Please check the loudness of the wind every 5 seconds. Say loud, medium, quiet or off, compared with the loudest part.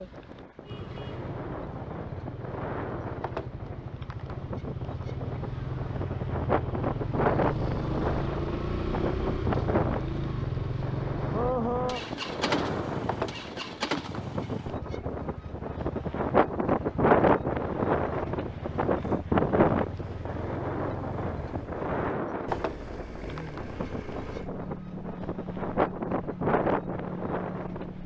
quiet, medium, medium, loud, medium, medium.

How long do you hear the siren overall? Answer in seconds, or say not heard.
not heard.